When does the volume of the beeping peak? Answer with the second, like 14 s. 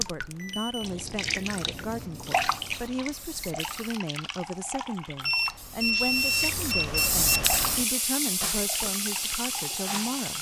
6 s.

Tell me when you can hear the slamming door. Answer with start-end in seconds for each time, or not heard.
not heard.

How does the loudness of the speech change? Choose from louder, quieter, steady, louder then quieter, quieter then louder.
steady.